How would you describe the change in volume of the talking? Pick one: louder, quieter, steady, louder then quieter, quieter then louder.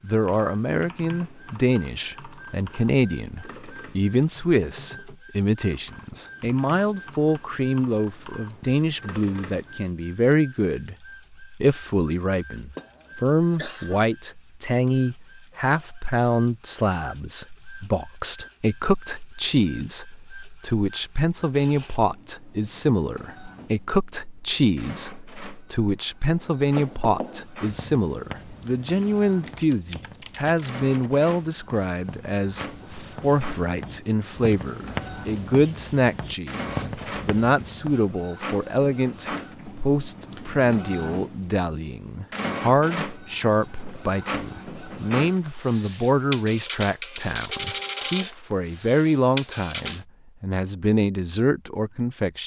steady.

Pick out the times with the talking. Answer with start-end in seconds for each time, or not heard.
0.0-52.4.